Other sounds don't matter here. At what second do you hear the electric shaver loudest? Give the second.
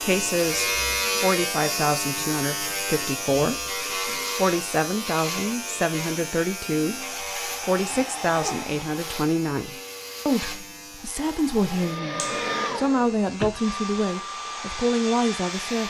1 s.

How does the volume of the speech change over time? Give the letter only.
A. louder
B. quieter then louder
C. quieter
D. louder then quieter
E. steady
E.